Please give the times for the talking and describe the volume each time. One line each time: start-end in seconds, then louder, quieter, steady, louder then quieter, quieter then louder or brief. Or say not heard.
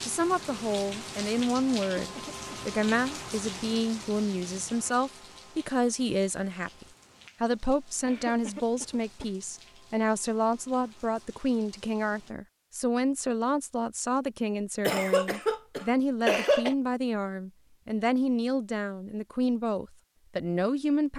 0.0-21.1 steady.